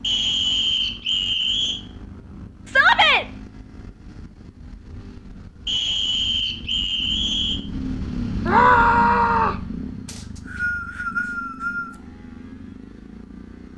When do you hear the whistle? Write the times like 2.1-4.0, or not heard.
0.0-1.8, 5.7-7.6, 10.1-11.9.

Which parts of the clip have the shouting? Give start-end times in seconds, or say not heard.
2.6-3.2, 8.4-9.6.